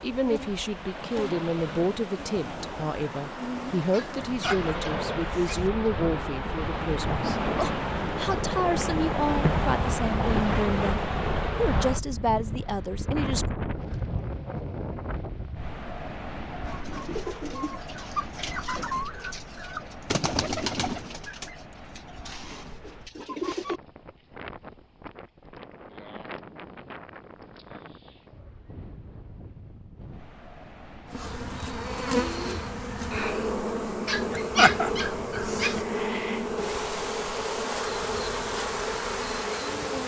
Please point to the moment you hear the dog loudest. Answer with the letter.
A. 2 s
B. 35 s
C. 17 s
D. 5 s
B.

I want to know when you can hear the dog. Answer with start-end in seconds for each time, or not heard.
3.9-5.7, 34.0-35.8.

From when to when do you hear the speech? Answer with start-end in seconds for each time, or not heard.
0.0-13.4.